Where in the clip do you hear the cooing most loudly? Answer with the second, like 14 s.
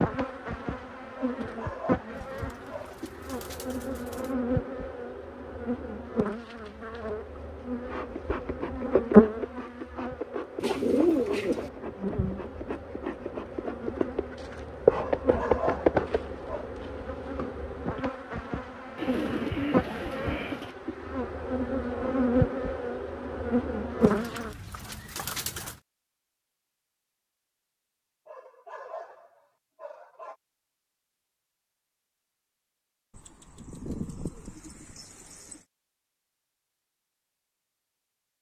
11 s.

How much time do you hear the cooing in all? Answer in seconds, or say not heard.
9 s.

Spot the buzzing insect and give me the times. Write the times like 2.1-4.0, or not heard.
0.0-24.6.